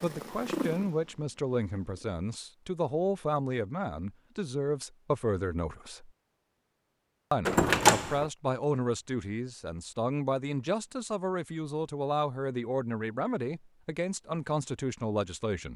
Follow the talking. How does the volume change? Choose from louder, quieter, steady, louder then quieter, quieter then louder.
steady.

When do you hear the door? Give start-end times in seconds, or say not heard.
7.5-8.3.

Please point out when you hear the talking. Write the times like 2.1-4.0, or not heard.
0.0-6.1, 7.3-15.7.